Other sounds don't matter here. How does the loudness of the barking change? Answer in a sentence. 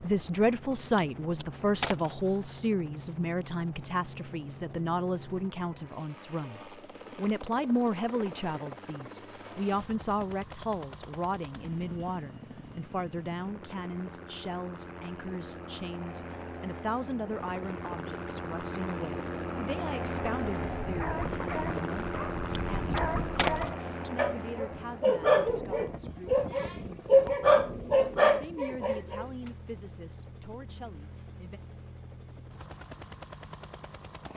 The loudness of the barking goes up.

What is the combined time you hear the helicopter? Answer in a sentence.
You can hear the helicopter for 34 seconds altogether.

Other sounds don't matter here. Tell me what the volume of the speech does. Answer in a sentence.
The volume of the speech goes down.